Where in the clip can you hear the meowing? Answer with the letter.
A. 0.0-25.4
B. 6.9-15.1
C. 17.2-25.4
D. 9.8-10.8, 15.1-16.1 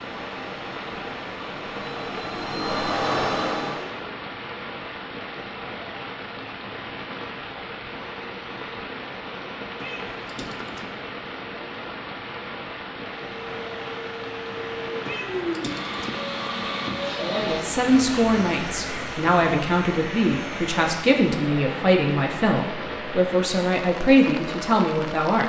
D.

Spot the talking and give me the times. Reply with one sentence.
You can hear the talking from 17.2 to 25.4 s.